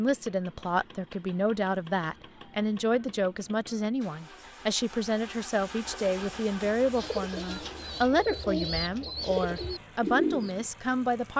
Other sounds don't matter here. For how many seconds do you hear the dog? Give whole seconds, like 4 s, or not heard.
not heard.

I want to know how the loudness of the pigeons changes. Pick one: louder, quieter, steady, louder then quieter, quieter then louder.
louder.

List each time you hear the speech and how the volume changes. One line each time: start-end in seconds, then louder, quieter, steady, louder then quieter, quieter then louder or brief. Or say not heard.
0.0-11.3 steady.